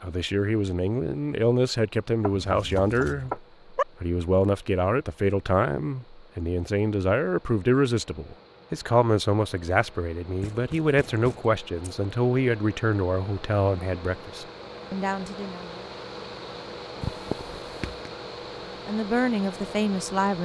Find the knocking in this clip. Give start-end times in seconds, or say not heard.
2.2-3.9, 10.4-11.5, 17.0-18.0.